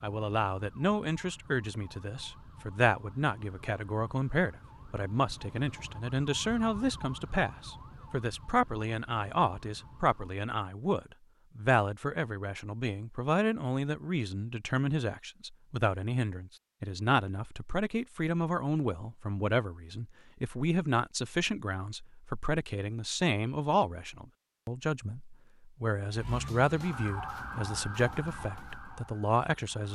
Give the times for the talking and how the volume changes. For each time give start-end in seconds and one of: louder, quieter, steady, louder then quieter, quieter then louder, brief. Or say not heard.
0.0-29.9 steady.